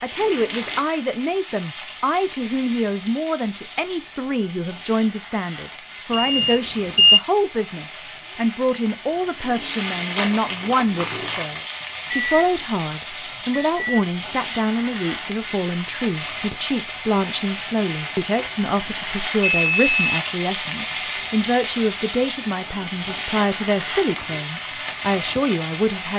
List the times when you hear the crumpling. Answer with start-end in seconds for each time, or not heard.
0.1-0.9, 9.4-11.6, 22.6-24.4.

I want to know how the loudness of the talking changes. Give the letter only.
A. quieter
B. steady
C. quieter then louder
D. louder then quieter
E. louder
B.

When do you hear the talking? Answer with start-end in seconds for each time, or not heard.
0.0-26.1.